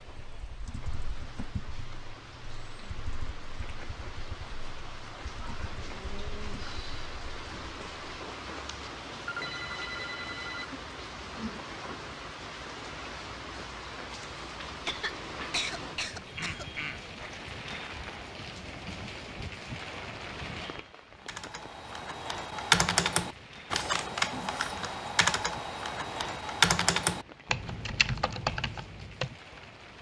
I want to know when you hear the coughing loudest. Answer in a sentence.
The loudest moment of the coughing is at 16 seconds.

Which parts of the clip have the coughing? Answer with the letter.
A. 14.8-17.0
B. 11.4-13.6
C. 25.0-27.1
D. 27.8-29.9
A.